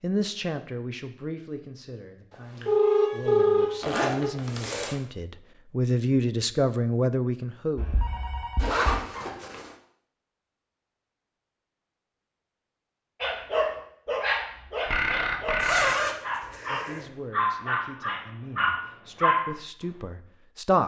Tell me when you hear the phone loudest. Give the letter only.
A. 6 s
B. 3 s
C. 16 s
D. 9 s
B.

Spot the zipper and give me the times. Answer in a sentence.
You can hear the zipper from 3.8 to 5.0 s, from 8.6 to 9.8 s and from 15.6 to 17.1 s.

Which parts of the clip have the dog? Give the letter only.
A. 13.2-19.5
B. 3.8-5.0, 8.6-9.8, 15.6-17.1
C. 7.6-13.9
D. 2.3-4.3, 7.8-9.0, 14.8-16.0
A.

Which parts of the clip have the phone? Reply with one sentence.
You can hear the phone from 2.3 to 4.3 s, from 7.8 to 9.0 s and from 14.8 to 16.0 s.